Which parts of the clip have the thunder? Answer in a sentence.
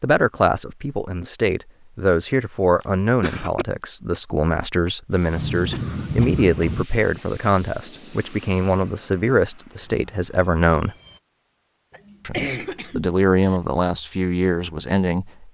You can hear the thunder from 5.3 to 6.8 s.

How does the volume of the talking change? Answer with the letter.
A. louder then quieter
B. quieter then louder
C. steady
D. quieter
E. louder
C.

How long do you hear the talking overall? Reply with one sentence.
The talking can be heard for 14 seconds in total.